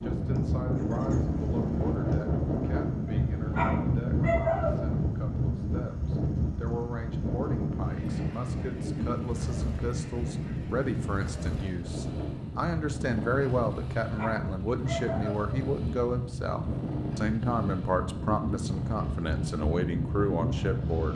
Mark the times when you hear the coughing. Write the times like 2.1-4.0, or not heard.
not heard.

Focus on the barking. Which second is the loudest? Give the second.
4 s.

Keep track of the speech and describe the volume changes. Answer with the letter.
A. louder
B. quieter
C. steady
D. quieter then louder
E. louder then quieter
A.